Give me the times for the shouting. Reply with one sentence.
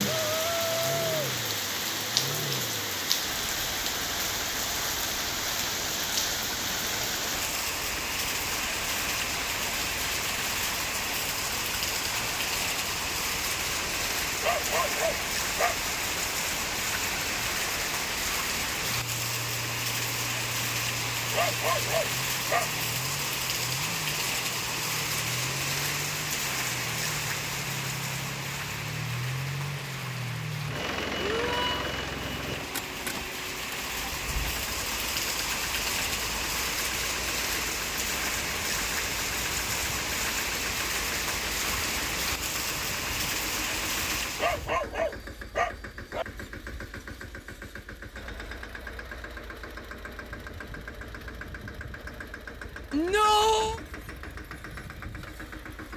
The shouting can be heard from 0.1 to 1.2 s, from 31.1 to 31.9 s and from 52.9 to 53.8 s.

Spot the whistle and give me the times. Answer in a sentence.
The whistle can't be heard in this clip.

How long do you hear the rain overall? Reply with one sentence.
The rain can be heard for 45 seconds in total.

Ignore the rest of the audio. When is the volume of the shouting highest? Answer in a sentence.
The volume of the shouting peaks at 53 seconds.